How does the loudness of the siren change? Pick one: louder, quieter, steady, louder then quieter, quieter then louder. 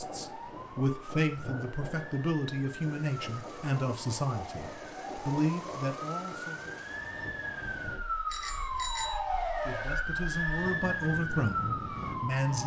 louder.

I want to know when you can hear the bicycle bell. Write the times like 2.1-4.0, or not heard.
8.3-9.2.